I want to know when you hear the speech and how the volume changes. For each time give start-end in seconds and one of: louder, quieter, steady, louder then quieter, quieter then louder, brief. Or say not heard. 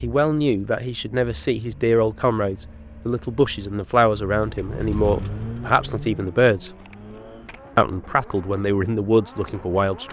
0.0-6.7 steady
7.8-10.0 brief.